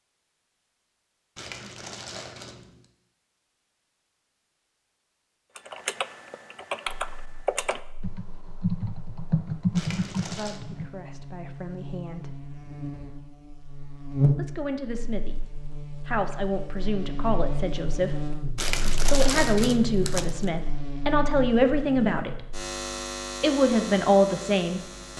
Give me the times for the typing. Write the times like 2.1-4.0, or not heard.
5.5-11.0.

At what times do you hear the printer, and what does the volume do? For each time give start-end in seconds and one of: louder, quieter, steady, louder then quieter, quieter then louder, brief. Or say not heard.
not heard.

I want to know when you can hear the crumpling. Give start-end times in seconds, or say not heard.
1.4-2.9, 9.8-10.6, 18.6-20.5.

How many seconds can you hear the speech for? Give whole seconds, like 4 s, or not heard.
10 s.